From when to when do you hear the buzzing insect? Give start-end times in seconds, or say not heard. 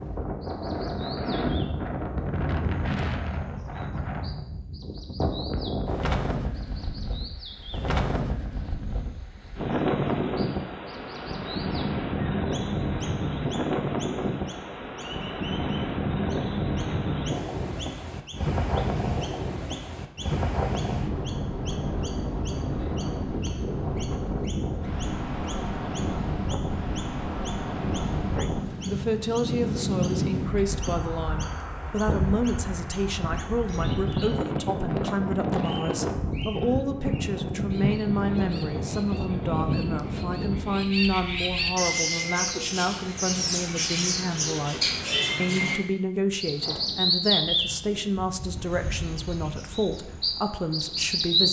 not heard.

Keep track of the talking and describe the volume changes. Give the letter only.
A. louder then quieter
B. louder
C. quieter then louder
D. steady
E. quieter
D.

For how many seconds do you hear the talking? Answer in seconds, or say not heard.
23 s.